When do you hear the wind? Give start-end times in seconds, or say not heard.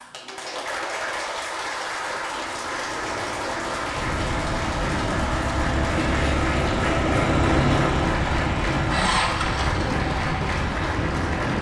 4.0-11.5.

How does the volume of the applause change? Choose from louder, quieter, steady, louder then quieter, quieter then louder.
steady.